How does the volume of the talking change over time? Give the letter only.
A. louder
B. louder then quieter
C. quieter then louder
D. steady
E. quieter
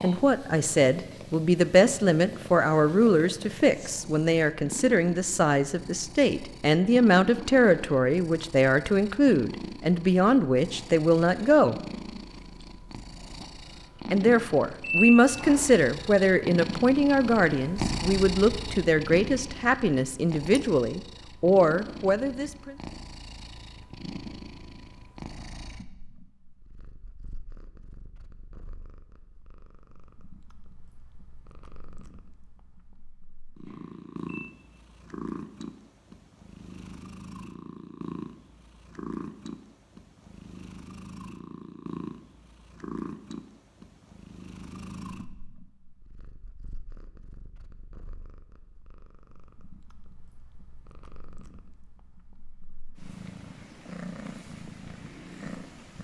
D.